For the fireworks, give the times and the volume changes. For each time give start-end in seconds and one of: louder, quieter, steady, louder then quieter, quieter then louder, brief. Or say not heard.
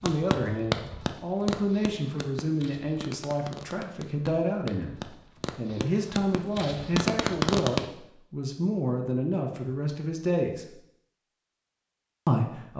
0.0-7.8 quieter then louder.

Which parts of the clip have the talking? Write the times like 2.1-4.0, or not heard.
0.0-10.7, 12.2-12.7.